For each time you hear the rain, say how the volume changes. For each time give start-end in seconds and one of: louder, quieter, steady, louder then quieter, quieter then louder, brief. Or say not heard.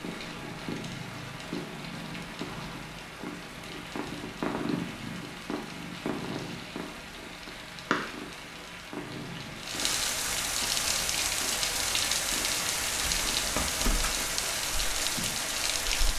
0.0-16.1 louder.